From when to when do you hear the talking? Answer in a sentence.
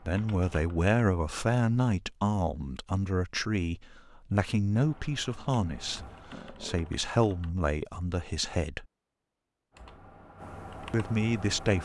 The talking can be heard from 0.0 to 8.8 s and from 10.9 to 11.7 s.